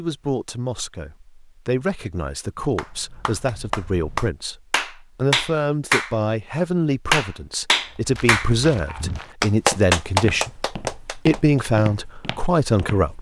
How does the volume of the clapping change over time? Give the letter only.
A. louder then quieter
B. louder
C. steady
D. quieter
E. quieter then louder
B.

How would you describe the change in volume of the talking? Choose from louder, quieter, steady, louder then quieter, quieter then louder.
louder.